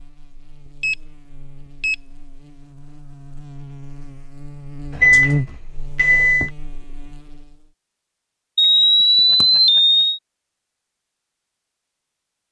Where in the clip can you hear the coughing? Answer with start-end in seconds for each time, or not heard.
not heard.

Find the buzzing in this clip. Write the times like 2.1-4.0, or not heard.
0.0-7.7.